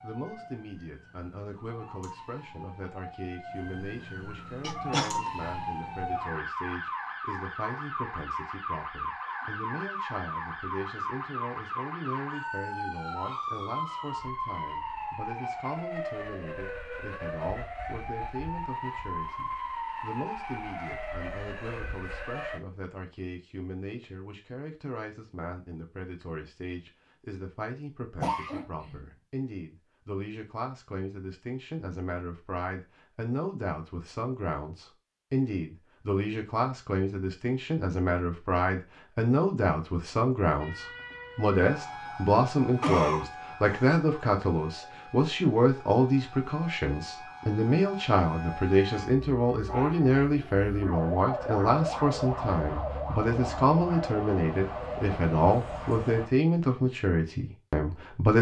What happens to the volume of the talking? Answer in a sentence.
The loudness of the talking goes up.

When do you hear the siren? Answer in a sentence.
You can hear the siren from 0.0 to 22.6 s and from 40.6 to 56.3 s.